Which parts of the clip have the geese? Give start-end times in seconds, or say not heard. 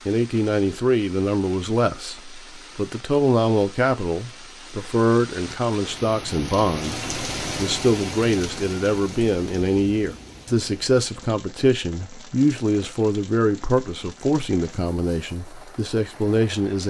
not heard.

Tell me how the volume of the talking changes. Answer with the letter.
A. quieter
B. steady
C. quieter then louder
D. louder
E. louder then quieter
B.